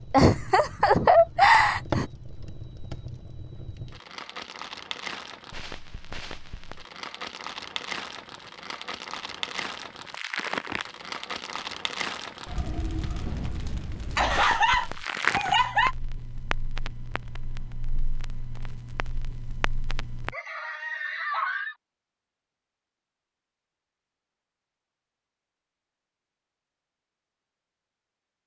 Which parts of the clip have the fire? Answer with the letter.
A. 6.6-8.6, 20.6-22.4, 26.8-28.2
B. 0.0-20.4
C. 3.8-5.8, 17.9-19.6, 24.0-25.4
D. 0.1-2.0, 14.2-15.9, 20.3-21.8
B.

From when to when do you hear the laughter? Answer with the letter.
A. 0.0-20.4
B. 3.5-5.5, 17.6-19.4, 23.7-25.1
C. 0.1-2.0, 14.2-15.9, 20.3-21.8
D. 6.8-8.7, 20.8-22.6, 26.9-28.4
C.